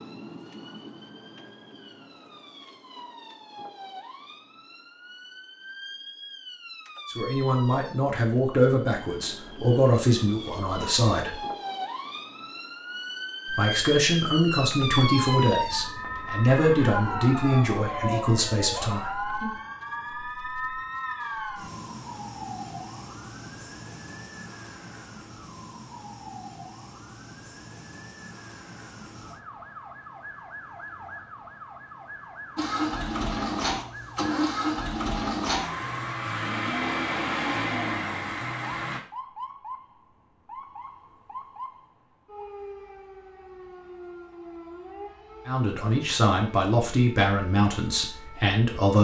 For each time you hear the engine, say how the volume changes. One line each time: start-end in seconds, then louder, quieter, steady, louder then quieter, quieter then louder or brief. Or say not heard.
32.5-39.0 steady.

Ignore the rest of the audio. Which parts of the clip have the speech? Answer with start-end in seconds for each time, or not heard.
7.2-11.4, 13.4-19.5, 45.5-48.9.